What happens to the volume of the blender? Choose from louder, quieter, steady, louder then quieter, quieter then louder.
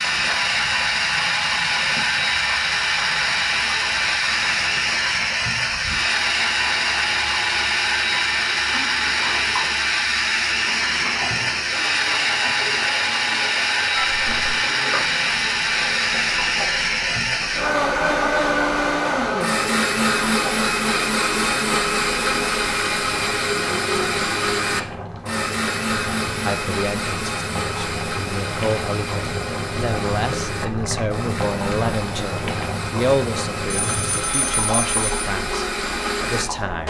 quieter.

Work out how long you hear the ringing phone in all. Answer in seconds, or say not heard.
2 s.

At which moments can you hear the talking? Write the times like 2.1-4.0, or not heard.
26.4-36.8.